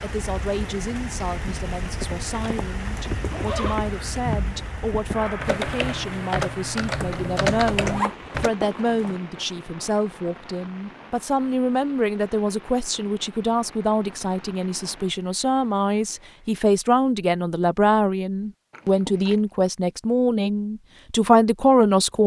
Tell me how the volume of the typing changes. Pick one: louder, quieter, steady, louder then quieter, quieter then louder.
louder.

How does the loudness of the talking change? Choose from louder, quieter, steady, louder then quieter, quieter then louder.
louder.